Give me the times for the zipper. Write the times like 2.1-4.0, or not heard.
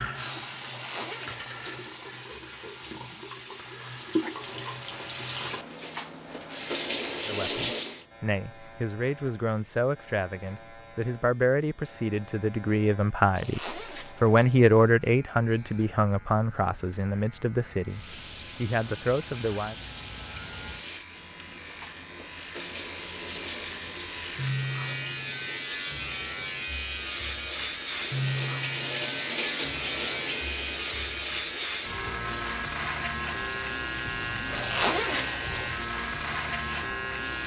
0.7-1.8, 13.3-14.5, 34.5-35.7.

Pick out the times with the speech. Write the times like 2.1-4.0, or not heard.
7.2-19.8.